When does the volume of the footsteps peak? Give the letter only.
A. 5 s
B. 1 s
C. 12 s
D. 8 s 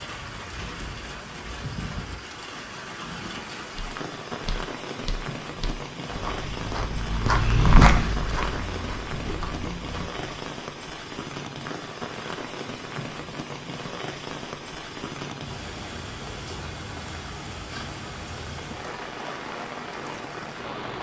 D.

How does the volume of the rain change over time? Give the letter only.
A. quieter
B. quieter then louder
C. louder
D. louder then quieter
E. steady
E.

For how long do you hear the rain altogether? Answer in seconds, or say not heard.
21 s.